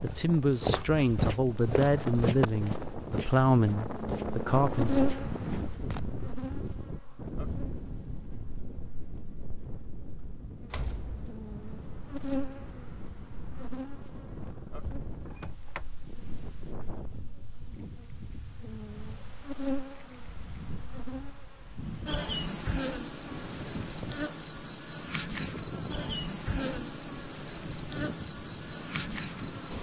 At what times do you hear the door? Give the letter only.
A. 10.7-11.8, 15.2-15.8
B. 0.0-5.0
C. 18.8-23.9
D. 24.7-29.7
A.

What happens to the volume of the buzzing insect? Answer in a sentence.
The loudness of the buzzing insect goes down, then up.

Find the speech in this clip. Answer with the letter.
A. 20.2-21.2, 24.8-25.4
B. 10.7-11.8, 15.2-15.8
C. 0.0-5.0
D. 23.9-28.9
C.